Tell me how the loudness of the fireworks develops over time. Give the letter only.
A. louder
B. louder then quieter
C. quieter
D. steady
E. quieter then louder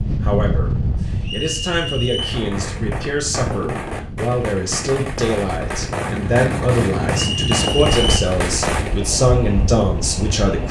A.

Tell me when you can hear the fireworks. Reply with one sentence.
The fireworks can be heard from 2.1 to 9.1 s.